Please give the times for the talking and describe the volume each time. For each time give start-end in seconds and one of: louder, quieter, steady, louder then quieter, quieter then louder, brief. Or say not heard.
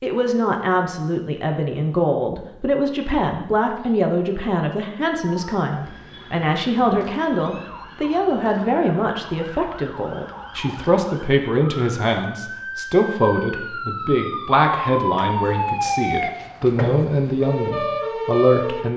0.0-18.9 steady.